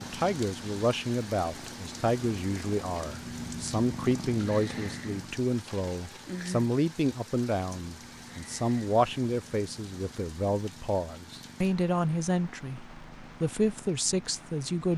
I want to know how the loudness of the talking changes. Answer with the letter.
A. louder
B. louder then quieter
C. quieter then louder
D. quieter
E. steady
E.